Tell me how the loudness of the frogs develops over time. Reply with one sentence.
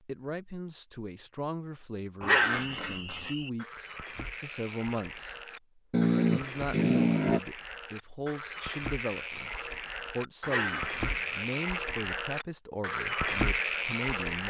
The volume of the frogs goes up.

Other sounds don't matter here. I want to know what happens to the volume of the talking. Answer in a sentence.
The volume of the talking stays about the same.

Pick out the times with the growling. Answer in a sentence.
The growling can be heard from 2.2 to 3.3 s, from 5.9 to 7.4 s and from 10.4 to 11.4 s.